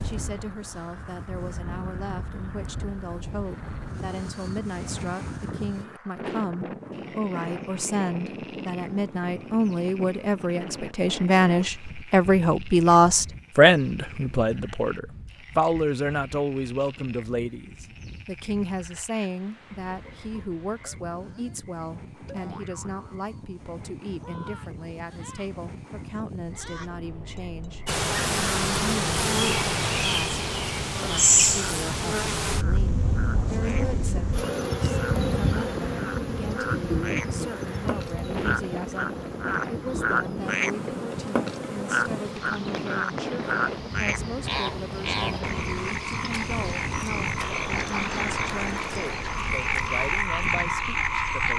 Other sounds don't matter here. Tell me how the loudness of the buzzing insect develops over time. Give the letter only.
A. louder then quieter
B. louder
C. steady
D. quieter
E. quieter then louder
D.